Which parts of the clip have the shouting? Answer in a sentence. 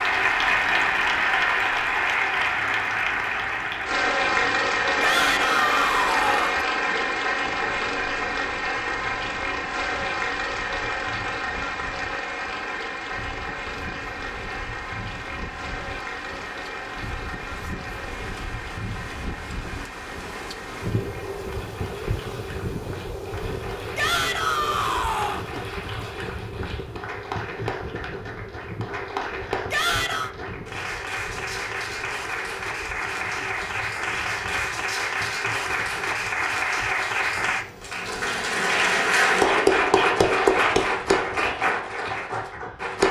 The shouting can be heard from 5.0 to 6.6 s, from 23.9 to 25.4 s and from 29.7 to 30.3 s.